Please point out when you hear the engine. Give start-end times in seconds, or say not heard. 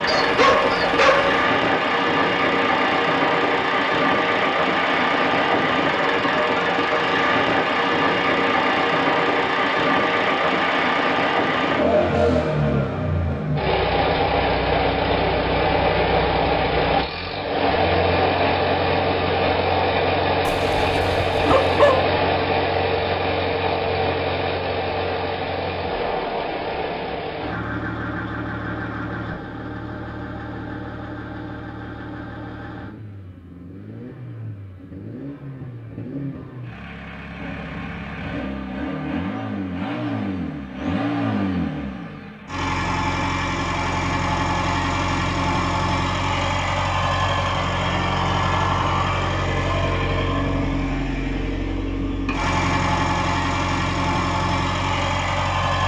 0.0-55.8.